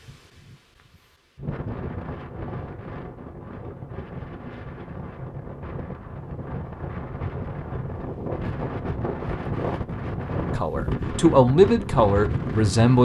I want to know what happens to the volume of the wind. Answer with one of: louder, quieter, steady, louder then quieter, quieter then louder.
louder.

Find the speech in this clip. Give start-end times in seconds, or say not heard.
10.6-13.0.